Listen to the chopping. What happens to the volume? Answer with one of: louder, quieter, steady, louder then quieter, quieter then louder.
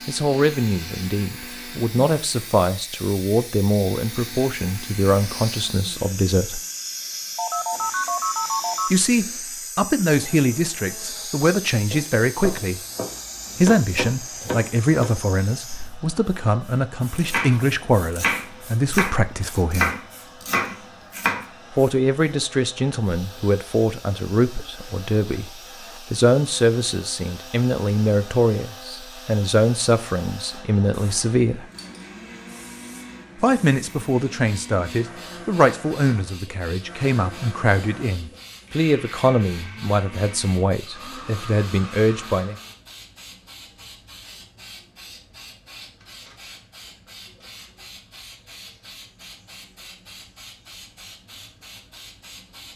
louder.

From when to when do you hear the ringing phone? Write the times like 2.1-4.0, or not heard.
7.3-9.0.